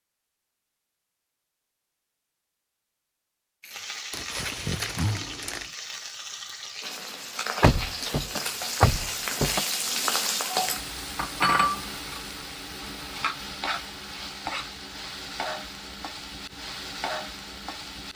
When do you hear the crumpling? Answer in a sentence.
The crumpling can be heard from 4.1 to 5.7 s.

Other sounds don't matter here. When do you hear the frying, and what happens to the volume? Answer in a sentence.
You can hear the frying from 3.6 to 18.1 s, getting louder then quieter.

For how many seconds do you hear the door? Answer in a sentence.
The door can be heard for 2 seconds in total.